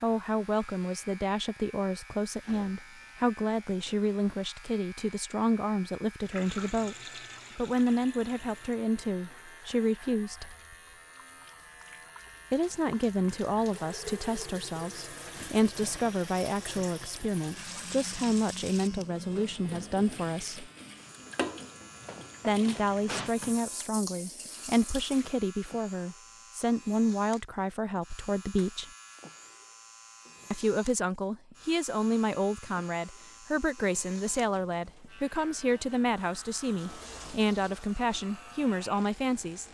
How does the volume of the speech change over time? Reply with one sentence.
The loudness of the speech stays about the same.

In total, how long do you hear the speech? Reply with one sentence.
The speech can be heard for 34 seconds in total.